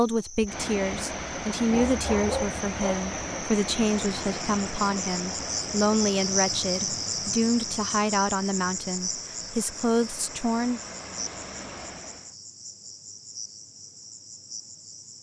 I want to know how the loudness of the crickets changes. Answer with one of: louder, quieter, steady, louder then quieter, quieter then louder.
louder then quieter.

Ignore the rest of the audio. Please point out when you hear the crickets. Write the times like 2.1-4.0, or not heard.
0.0-15.1.